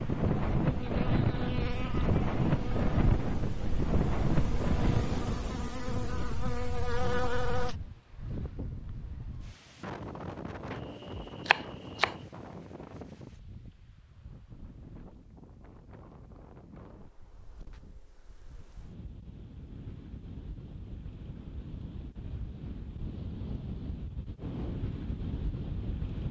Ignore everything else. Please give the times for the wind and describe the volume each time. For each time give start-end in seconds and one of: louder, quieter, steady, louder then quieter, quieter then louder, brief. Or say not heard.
0.0-26.2 quieter then louder.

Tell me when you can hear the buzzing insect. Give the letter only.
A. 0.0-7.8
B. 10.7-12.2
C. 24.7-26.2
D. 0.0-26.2
A.